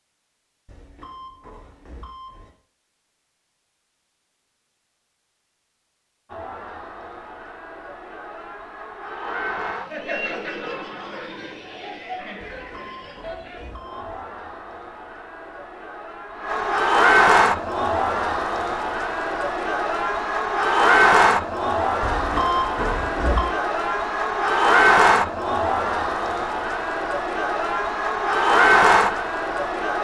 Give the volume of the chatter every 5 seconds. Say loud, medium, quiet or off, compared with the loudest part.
off, quiet, quiet, loud, loud, loud.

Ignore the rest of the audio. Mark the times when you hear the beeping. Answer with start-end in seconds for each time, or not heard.
0.7-2.5, 12.4-14.2, 22.0-23.6.